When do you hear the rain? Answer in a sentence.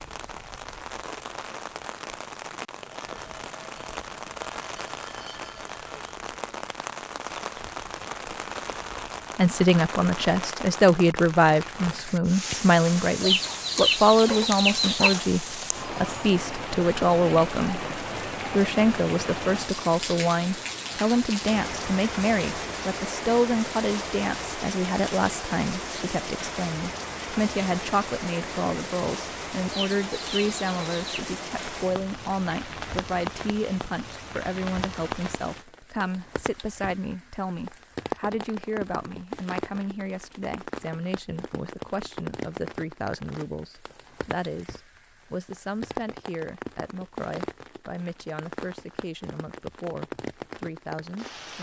You can hear the rain from 0.0 to 51.5 s.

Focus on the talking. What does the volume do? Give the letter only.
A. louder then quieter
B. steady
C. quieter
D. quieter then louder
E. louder
C.